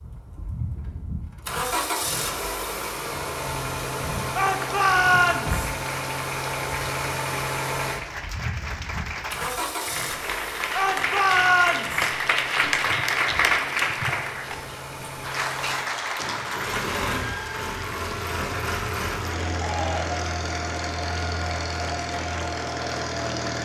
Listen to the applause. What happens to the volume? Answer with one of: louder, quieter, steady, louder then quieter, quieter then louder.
louder then quieter.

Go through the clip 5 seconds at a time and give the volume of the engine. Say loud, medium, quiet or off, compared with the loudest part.
loud, loud, medium, loud, loud.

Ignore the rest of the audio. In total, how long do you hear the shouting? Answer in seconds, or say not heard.
3 s.